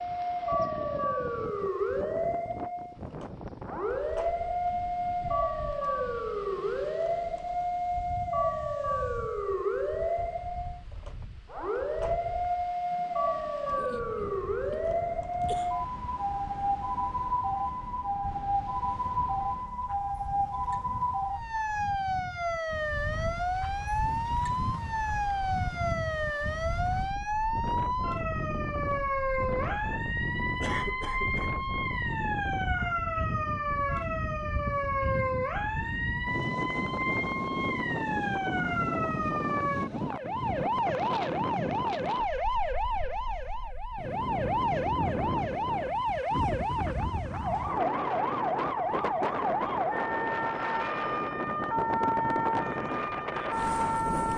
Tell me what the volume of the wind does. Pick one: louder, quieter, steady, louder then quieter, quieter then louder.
louder.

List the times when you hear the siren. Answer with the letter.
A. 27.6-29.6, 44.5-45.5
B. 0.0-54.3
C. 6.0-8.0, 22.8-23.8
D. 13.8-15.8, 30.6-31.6
B.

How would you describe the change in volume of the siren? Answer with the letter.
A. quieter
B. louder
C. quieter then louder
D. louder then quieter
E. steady
E.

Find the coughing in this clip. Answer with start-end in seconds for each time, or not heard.
13.8-15.8, 30.6-31.6.